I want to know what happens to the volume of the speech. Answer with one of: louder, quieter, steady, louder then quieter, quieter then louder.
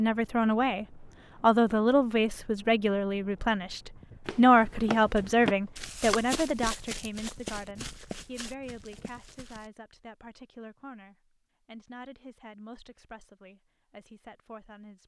quieter.